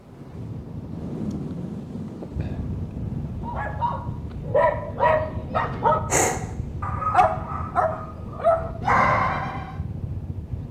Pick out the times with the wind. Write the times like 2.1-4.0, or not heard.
0.0-10.6.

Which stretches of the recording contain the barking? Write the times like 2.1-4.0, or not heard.
3.5-9.8.